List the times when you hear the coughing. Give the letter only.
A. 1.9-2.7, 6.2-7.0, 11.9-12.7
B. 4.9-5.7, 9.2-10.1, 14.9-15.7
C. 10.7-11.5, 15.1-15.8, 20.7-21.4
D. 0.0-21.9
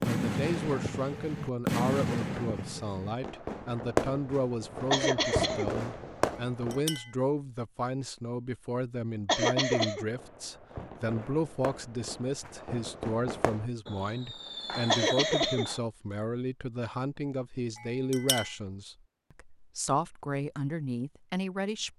B.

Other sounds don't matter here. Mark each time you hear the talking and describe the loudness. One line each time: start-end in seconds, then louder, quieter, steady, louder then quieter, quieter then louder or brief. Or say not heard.
0.0-21.9 steady.